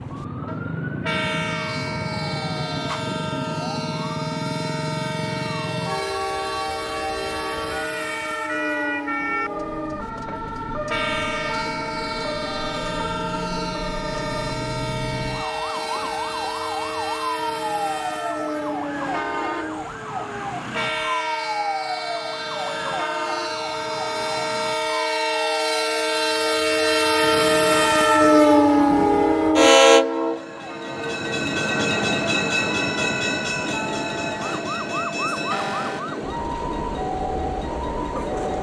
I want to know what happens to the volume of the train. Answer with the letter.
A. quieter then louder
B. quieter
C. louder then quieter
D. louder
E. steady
C.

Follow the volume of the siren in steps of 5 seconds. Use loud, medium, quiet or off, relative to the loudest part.
loud, loud, loud, loud, loud, medium, medium, loud.